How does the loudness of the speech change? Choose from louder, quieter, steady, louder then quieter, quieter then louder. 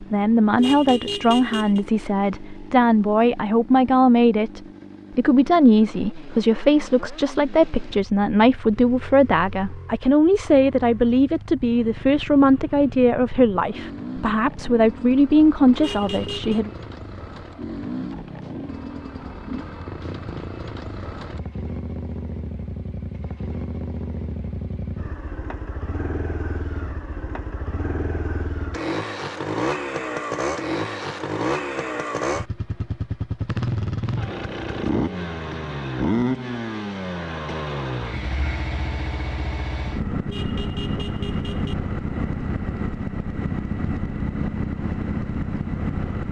steady.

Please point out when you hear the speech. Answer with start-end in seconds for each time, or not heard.
0.0-16.7.